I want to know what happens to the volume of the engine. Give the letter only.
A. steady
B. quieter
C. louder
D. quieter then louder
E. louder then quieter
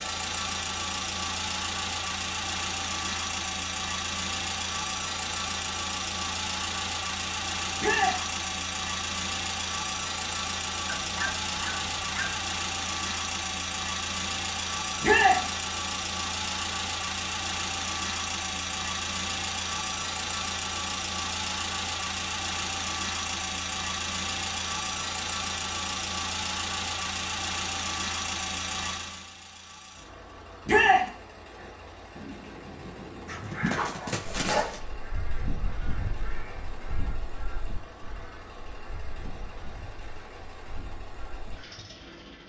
B.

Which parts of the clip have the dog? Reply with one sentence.
The dog can be heard from 10.8 to 12.4 s and from 33.2 to 34.8 s.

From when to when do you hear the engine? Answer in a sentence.
You can hear the engine from 0.0 to 42.4 s.